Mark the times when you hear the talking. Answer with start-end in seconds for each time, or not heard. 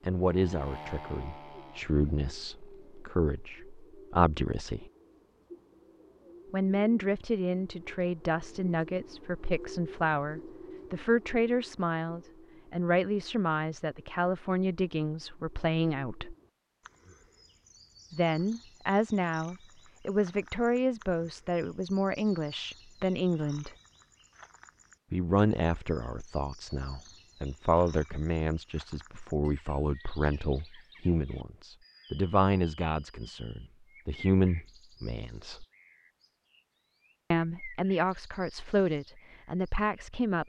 0.0-4.9, 6.5-16.4, 18.1-23.7, 25.1-35.6, 37.3-40.4.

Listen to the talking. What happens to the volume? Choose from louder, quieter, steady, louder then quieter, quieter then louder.
steady.